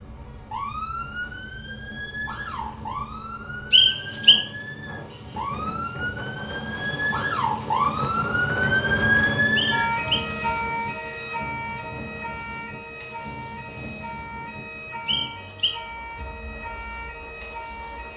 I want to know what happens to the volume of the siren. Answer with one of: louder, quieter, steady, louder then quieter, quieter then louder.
louder then quieter.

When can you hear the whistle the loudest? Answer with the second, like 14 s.
4 s.